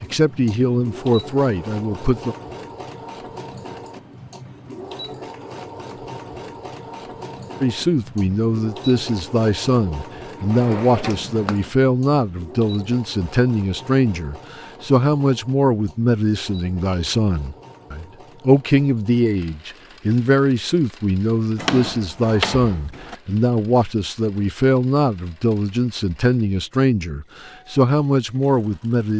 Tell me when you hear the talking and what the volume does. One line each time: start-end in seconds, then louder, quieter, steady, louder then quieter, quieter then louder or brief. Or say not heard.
0.0-2.4 brief
7.6-29.1 steady.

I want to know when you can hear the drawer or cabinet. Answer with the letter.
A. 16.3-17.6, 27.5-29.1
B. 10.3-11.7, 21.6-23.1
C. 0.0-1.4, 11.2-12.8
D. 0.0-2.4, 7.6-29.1
B.